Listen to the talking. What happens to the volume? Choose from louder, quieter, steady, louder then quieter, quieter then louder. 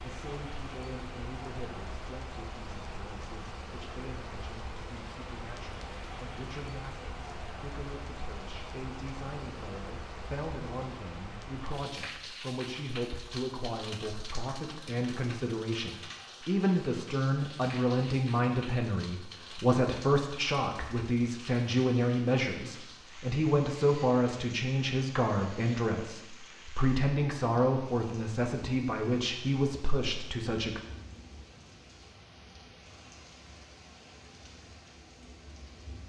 louder.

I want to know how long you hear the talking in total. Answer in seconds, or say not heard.
31 s.